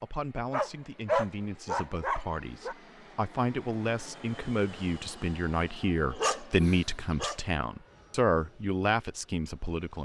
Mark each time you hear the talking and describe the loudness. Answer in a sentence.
You can hear the talking from 0.0 to 9.9 s, getting louder.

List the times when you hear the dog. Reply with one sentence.
You can hear the dog from 0.5 to 2.8 s and from 6.1 to 7.4 s.